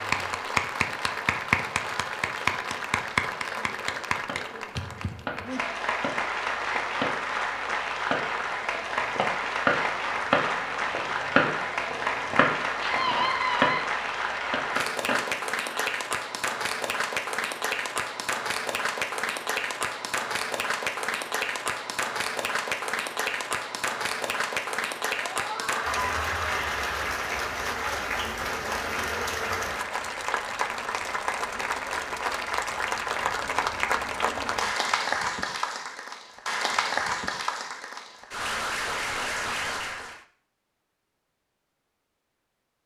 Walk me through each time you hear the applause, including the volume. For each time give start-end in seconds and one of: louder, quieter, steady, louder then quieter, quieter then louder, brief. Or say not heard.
0.0-40.2 steady.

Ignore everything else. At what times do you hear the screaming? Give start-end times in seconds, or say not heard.
12.8-13.8, 25.3-26.9.